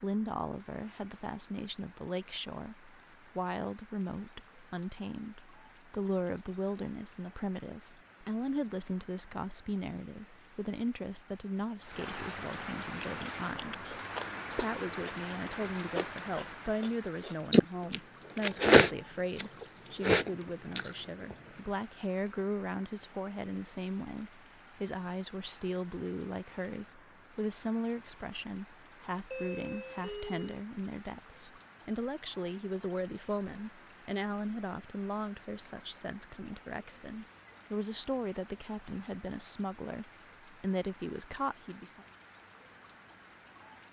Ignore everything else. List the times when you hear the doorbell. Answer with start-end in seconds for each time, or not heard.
29.3-30.6.